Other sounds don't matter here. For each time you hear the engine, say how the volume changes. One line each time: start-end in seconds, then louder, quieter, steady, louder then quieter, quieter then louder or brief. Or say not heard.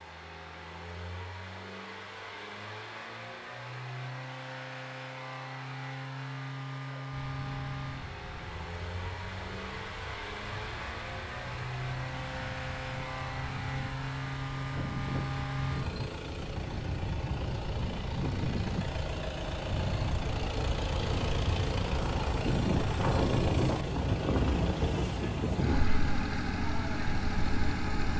0.0-28.1 louder.